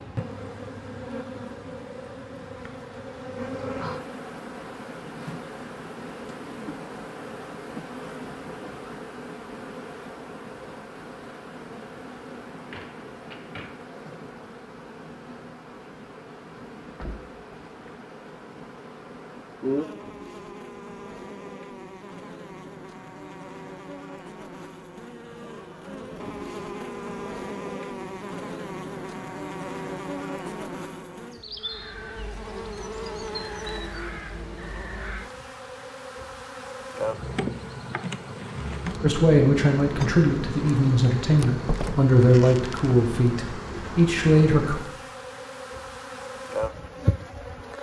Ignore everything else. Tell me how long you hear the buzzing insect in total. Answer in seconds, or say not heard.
48 s.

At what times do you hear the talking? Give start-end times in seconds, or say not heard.
39.0-44.8.